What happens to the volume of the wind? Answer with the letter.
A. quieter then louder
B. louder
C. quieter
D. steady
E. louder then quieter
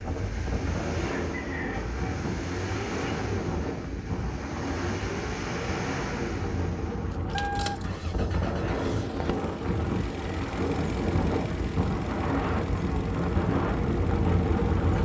B.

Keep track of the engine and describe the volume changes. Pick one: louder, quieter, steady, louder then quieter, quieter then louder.
quieter.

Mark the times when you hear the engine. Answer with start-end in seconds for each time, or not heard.
0.0-15.0.